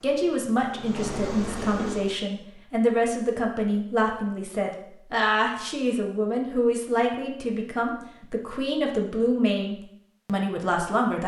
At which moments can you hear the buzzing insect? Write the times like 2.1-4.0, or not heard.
0.0-2.1.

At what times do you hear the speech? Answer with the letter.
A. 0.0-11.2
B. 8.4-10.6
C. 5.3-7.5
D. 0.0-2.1
A.